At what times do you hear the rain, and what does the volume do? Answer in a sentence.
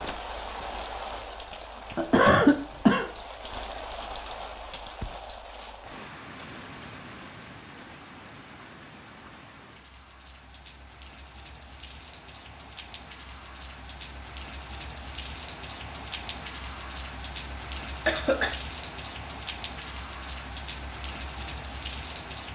The rain can be heard from 0.0 to 22.5 s, getting quieter then louder.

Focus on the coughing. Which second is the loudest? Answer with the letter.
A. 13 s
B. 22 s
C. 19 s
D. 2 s
D.